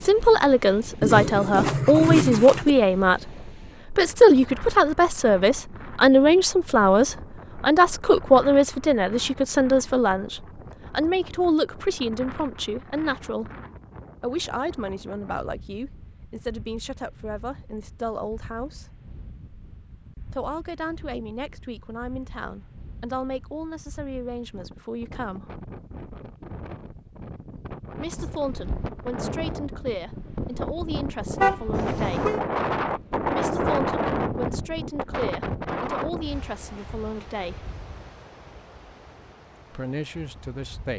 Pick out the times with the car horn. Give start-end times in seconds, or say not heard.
1.0-2.8, 31.4-32.4.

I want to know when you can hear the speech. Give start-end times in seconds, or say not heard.
0.0-13.5, 14.2-18.9, 20.3-25.5, 27.9-32.4, 33.2-37.7, 39.7-40.9.